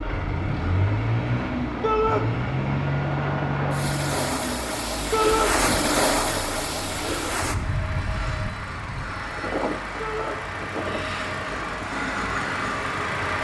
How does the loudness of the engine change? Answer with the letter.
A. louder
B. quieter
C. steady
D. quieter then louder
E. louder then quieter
D.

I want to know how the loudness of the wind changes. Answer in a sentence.
The volume of the wind goes up, then down.